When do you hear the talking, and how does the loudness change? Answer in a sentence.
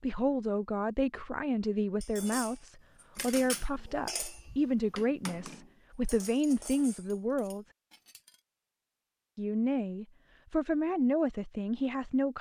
You can hear the talking from 0.0 to 7.7 s, at a steady volume; and briefly from 9.3 to 12.3 s.